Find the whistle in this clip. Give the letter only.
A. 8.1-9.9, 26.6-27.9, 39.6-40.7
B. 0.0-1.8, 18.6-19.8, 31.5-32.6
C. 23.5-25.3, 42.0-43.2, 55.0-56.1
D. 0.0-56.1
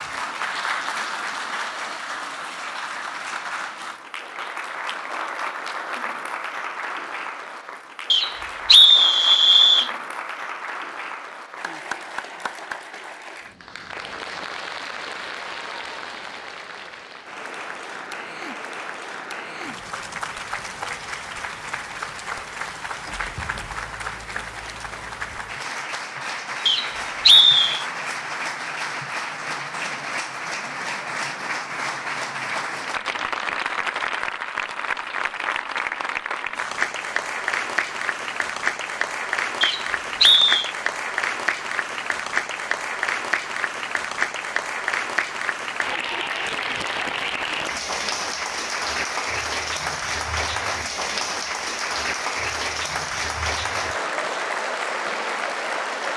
A.